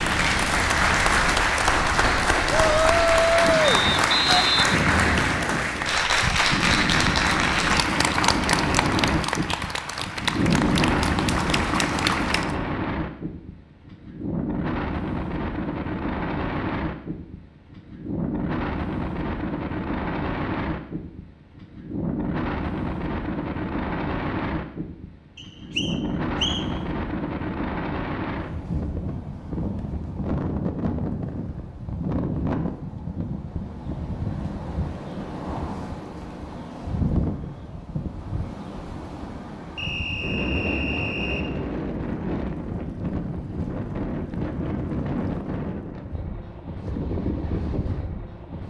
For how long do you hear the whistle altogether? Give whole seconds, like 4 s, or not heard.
5 s.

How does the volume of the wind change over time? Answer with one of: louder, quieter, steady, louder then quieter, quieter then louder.
steady.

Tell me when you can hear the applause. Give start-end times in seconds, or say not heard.
0.0-12.6.